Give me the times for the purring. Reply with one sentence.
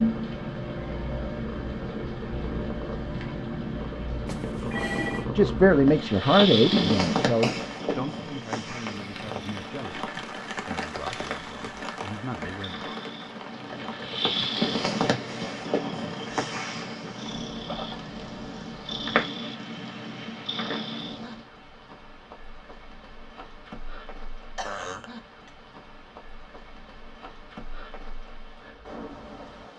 The purring can be heard from 0.0 to 21.4 s.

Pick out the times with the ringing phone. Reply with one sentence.
The ringing phone can be heard from 4.2 to 5.3 s.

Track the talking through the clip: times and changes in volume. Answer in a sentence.
The talking can be heard from 5.3 to 12.9 s, getting quieter.